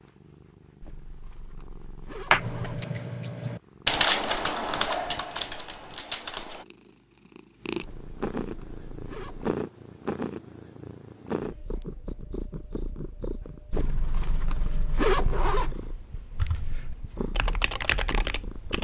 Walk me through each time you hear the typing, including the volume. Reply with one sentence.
The typing can be heard from 2.3 to 6.7 s, getting louder then quieter; and briefly from 16.3 to 18.7 s.